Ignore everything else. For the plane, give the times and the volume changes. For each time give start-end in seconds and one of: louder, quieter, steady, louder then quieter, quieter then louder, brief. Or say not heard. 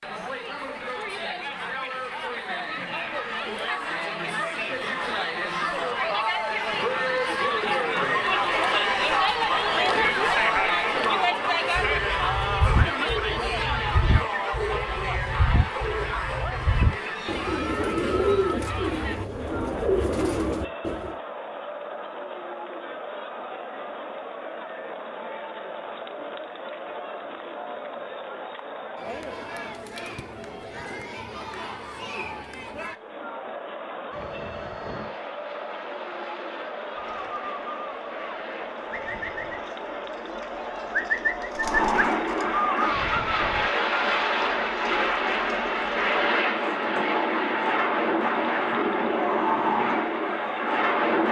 34.1-51.2 louder.